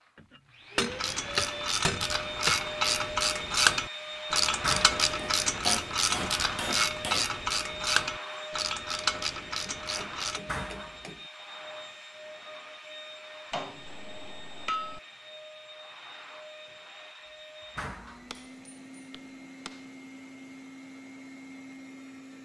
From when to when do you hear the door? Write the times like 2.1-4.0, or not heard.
4.6-5.0, 10.4-11.1, 17.8-18.4.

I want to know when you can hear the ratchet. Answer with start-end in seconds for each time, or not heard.
0.8-10.4.